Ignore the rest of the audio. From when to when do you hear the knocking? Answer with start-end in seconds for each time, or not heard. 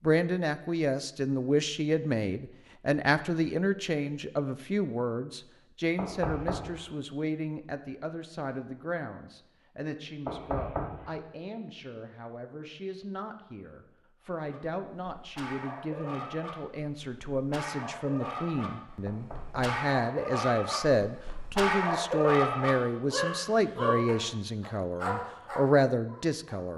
6.0-6.9, 10.2-11.2, 19.1-19.8.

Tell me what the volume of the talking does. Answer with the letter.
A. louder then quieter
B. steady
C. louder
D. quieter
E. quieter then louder
E.